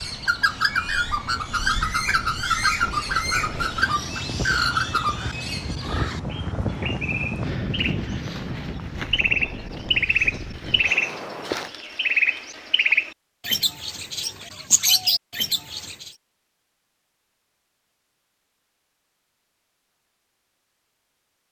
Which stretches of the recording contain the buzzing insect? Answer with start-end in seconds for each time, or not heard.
not heard.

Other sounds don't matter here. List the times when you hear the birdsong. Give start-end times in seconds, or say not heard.
0.0-16.1.